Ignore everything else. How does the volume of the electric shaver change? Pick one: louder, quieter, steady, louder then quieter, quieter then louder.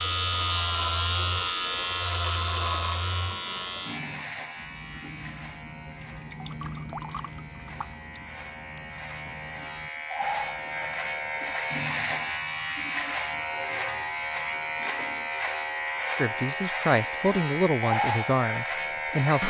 quieter then louder.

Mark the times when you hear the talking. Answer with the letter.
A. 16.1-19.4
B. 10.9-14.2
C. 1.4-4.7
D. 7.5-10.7
A.